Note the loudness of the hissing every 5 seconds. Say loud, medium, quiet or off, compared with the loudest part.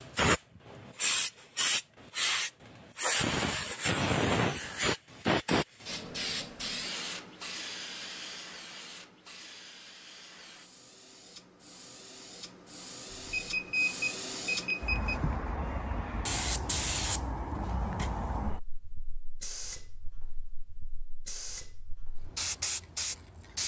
loud, medium, quiet, medium, medium.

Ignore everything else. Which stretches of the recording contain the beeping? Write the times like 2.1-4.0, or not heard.
13.1-15.2.